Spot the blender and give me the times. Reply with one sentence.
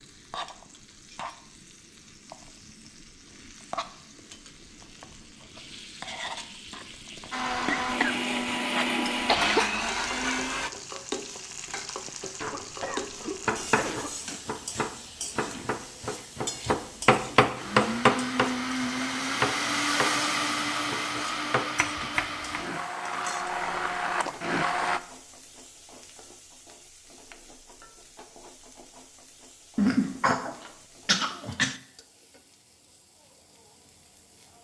The blender can be heard from 7.3 to 10.7 s and from 17.6 to 25.0 s.